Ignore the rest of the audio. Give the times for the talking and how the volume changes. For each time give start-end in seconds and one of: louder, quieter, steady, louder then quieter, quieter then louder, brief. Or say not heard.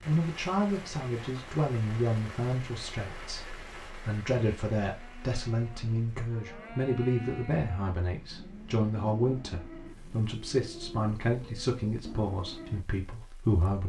0.1-13.8 steady.